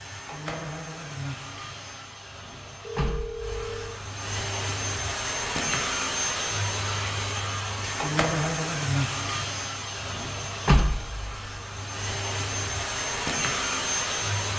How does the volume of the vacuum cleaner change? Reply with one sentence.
The volume of the vacuum cleaner goes up.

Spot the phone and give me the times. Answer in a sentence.
You can hear the phone from 2.8 to 4.0 s.